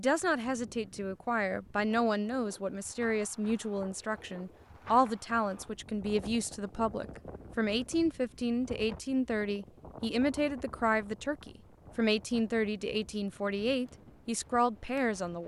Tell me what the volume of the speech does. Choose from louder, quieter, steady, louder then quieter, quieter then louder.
steady.